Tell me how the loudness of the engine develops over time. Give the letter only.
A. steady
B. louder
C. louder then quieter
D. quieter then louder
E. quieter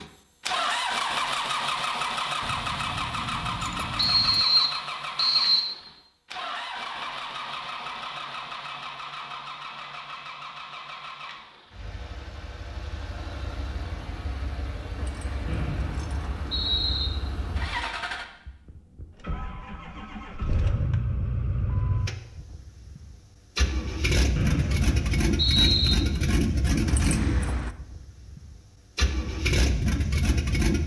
D.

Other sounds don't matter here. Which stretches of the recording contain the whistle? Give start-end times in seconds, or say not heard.
4.0-5.7, 15.4-17.1, 24.4-25.9.